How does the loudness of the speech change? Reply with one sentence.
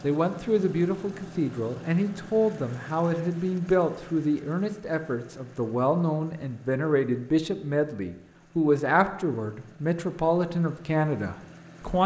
The loudness of the speech stays about the same.